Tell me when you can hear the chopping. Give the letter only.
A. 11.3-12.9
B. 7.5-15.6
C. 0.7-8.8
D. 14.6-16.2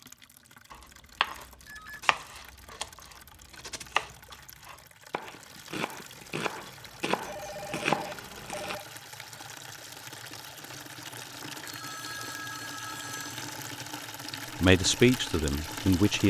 C.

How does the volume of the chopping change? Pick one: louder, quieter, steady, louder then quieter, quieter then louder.
quieter then louder.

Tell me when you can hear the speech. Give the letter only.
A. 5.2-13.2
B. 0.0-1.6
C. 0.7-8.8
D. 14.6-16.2
D.